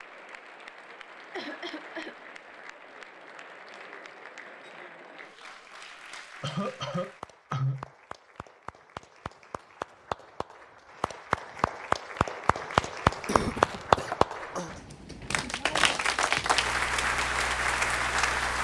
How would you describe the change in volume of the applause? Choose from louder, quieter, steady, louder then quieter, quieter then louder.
louder.